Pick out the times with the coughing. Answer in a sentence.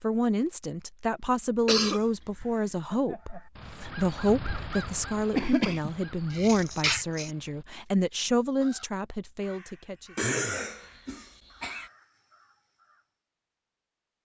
You can hear the coughing from 1.6 to 2.5 s, from 5.3 to 7.3 s and from 10.2 to 11.8 s.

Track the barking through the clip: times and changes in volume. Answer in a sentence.
The barking can't be heard in this clip.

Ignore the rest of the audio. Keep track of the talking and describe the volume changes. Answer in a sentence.
The loudness of the talking stays about the same.